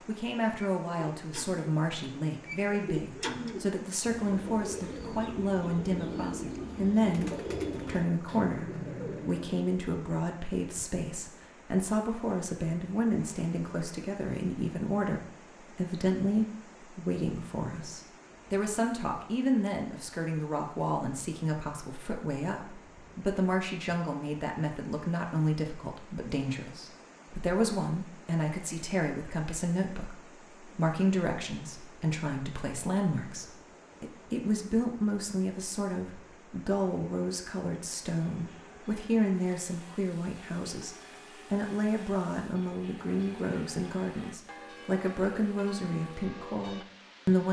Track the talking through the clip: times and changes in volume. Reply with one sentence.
The talking can be heard from 0.1 to 47.4 s, at a steady volume.